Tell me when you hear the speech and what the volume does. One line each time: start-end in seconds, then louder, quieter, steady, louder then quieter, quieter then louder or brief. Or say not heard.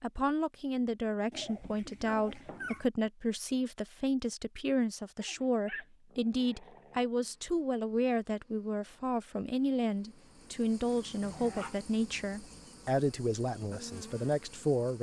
0.0-14.9 steady.